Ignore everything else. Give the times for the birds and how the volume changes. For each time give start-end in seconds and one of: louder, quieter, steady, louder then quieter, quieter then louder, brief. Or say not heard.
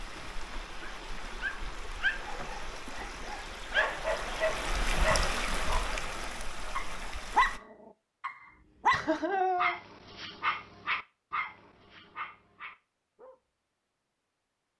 not heard.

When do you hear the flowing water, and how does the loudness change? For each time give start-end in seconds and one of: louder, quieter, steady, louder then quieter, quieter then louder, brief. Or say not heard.
0.0-7.6 louder then quieter.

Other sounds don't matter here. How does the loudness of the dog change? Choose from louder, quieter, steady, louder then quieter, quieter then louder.
louder then quieter.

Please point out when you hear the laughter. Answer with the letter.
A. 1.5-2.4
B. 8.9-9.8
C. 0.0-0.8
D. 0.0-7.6
B.